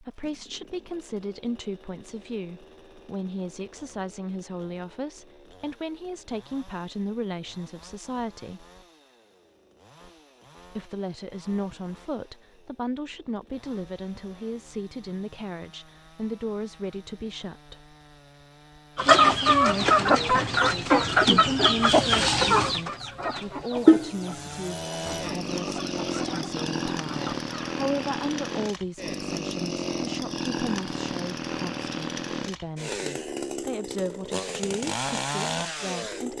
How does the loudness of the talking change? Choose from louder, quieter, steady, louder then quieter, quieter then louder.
steady.